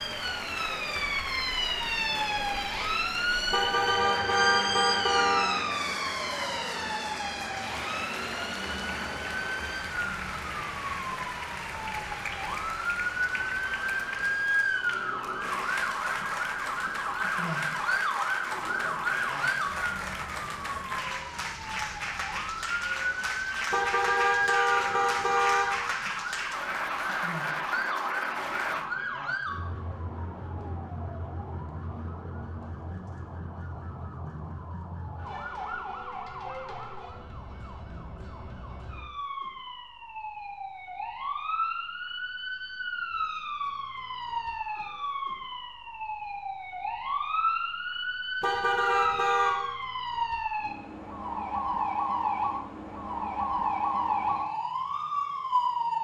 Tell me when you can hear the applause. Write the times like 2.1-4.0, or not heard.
0.0-28.9.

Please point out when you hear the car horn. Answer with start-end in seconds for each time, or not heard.
3.5-5.5, 23.7-25.8, 48.4-49.6.